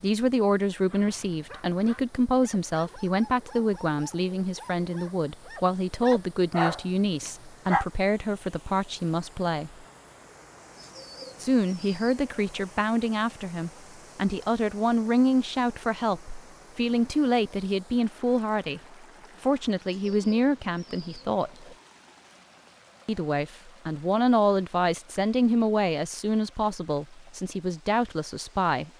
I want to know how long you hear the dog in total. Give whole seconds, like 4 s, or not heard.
7 s.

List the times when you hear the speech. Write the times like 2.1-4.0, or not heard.
0.0-9.7, 11.4-18.8, 19.4-21.6, 23.1-28.9.